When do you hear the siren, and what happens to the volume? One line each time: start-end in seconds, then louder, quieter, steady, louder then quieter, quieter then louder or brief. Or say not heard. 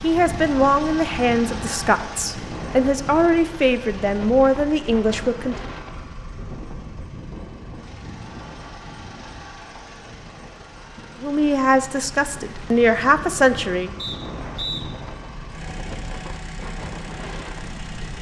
not heard.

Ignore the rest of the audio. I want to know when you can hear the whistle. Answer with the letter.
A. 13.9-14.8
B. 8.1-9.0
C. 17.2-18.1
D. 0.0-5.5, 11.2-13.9
A.